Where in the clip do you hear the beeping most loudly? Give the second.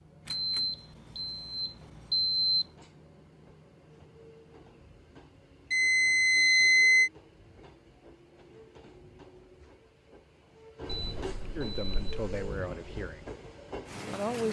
7 s.